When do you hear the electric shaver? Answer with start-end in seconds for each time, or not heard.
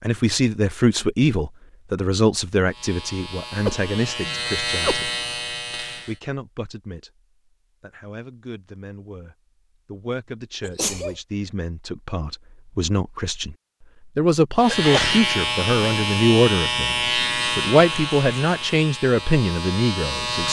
2.6-6.2, 14.6-20.4.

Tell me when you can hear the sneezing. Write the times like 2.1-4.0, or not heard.
3.6-5.1, 10.6-11.2, 14.8-15.2.